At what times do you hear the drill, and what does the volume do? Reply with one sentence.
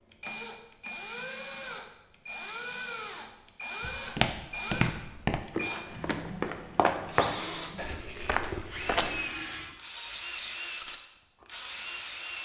The drill can be heard from 0.1 to 12.4 s, at a steady volume.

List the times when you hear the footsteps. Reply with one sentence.
You can hear the footsteps from 3.8 to 9.2 s.